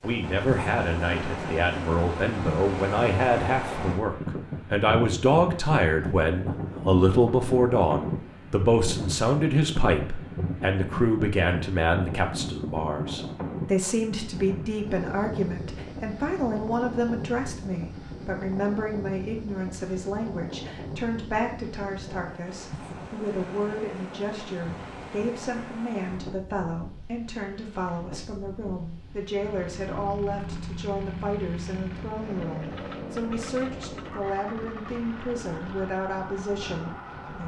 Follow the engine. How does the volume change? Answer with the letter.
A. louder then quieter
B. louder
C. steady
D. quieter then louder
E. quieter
E.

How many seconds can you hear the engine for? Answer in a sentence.
The engine can be heard for 8 seconds in total.